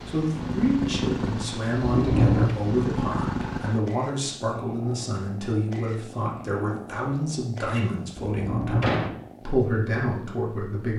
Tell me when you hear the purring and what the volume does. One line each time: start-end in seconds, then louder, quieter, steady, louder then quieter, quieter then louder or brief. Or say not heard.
0.0-10.9 quieter.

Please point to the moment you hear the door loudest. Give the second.
2 s.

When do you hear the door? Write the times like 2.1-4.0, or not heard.
1.8-2.5, 8.2-9.2.